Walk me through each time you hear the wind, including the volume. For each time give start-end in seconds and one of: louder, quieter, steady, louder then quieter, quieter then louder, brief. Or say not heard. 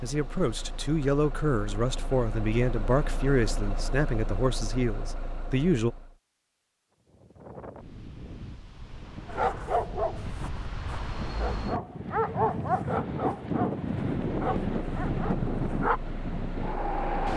7.0-17.3 louder.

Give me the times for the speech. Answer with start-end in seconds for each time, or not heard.
0.0-6.0.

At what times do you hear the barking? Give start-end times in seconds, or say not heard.
9.3-16.0.